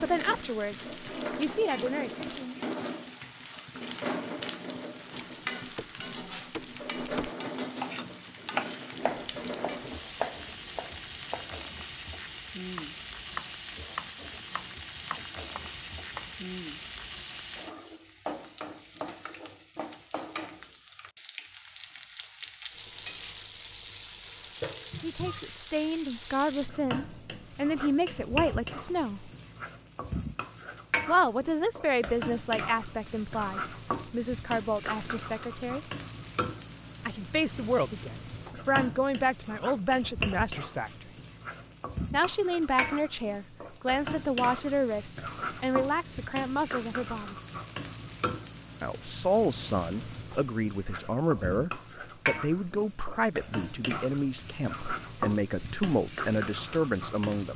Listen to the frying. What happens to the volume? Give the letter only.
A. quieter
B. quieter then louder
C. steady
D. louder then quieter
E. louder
C.